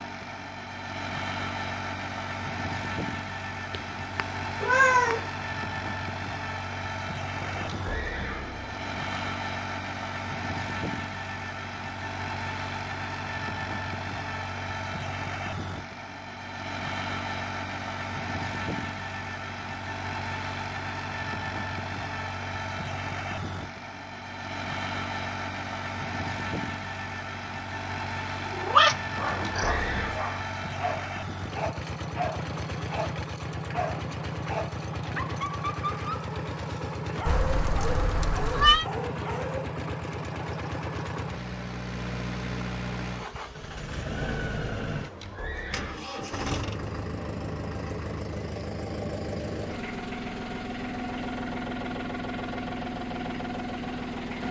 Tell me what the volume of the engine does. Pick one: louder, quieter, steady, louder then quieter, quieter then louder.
steady.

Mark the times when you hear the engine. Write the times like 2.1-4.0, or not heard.
0.0-54.4.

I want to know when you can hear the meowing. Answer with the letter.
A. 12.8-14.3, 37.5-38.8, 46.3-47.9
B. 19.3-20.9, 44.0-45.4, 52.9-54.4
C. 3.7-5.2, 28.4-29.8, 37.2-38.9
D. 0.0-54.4
C.